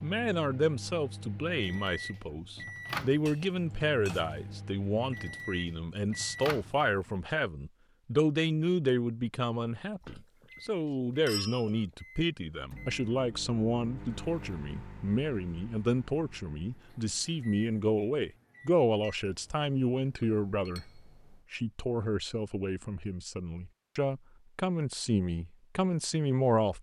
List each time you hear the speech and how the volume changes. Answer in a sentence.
The speech can be heard from 0.0 to 26.7 s, at a steady volume.